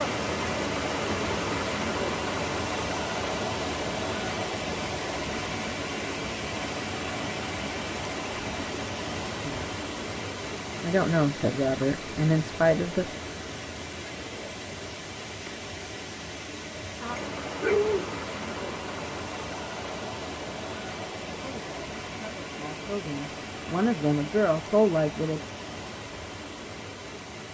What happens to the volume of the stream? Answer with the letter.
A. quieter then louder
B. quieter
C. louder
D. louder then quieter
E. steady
B.